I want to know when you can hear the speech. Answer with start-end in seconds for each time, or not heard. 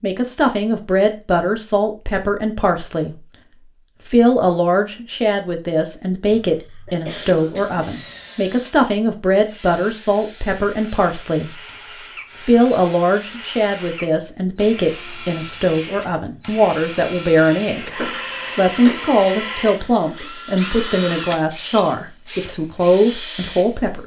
0.0-3.2, 4.0-11.6, 12.4-24.0.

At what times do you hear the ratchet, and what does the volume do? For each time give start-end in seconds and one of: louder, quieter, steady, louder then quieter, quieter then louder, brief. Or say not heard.
not heard.